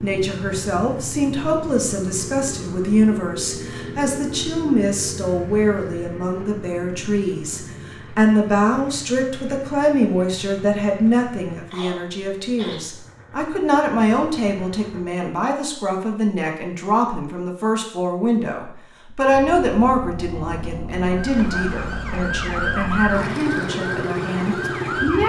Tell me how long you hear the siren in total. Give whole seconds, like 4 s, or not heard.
4 s.